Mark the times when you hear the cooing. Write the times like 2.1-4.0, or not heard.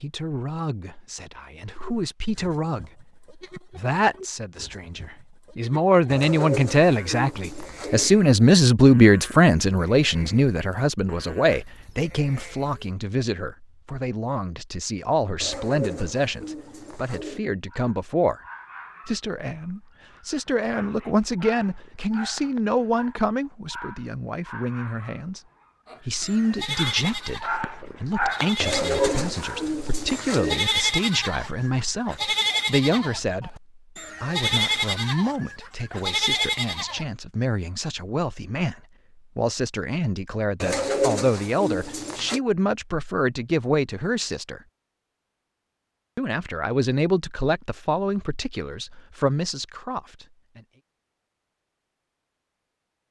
6.1-8.1, 15.4-17.4, 28.6-30.6, 40.6-42.4.